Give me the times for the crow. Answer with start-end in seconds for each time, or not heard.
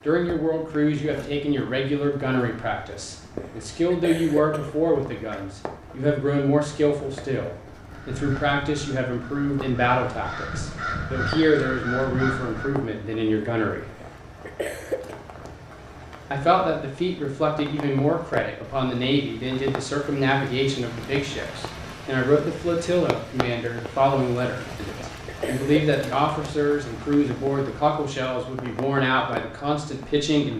7.9-12.8.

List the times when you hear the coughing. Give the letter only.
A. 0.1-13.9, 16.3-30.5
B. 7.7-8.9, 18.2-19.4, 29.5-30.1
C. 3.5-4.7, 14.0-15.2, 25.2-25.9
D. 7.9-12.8
C.